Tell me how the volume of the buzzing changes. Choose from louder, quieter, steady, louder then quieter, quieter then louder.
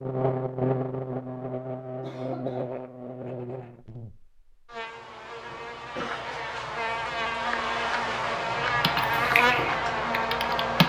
quieter then louder.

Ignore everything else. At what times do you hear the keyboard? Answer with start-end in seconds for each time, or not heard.
8.8-10.8.